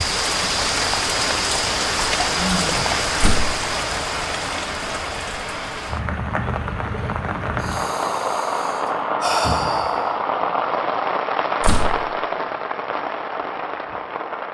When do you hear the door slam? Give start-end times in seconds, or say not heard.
3.1-3.6, 11.6-12.1.